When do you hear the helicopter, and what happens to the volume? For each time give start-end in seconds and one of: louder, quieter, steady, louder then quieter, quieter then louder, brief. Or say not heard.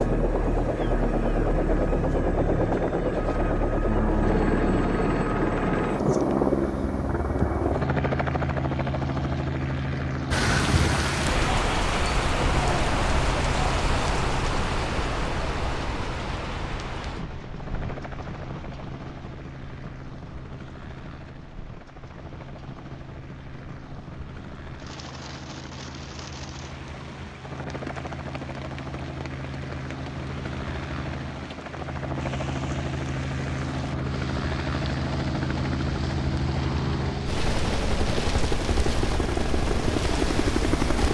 0.0-41.0 quieter then louder.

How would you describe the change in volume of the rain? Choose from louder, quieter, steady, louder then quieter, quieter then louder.
quieter.